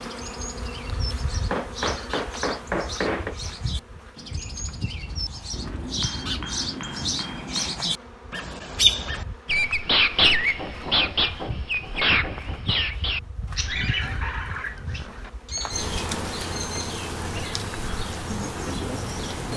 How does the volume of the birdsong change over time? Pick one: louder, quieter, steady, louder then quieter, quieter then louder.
louder then quieter.